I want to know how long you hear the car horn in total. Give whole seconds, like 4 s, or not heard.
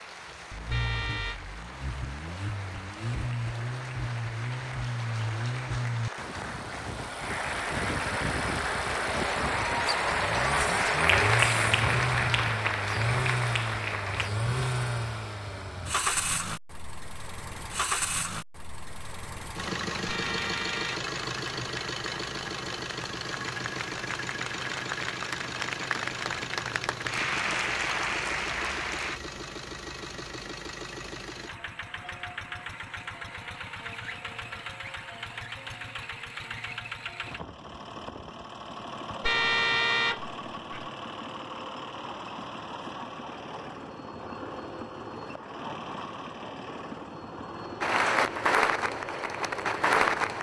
3 s.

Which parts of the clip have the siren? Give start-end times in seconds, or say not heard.
not heard.